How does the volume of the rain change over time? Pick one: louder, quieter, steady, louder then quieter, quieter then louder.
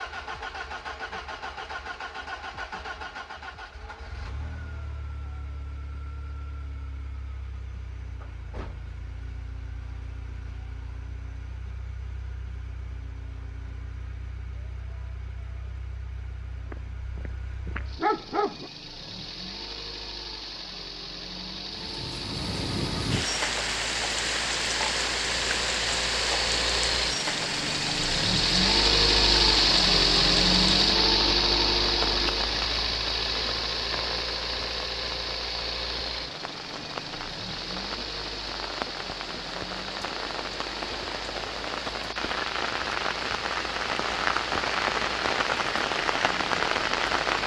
quieter then louder.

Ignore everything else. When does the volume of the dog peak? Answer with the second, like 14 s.
18 s.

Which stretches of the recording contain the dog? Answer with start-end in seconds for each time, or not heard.
16.7-18.7.